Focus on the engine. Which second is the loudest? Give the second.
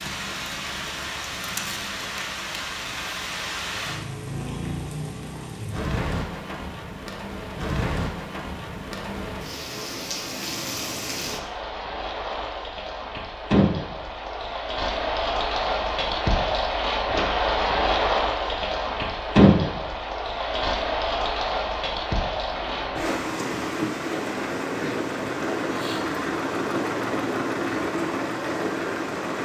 27 s.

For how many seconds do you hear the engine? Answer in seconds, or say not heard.
7 s.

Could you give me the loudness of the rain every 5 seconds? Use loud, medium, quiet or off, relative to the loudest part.
medium, medium, medium, loud, medium, medium.